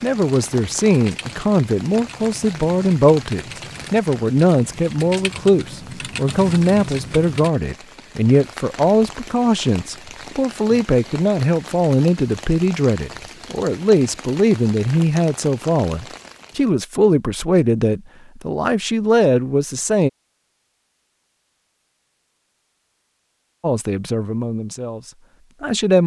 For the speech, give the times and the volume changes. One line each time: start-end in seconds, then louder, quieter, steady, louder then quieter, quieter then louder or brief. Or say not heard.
0.0-20.1 steady
23.6-26.0 brief.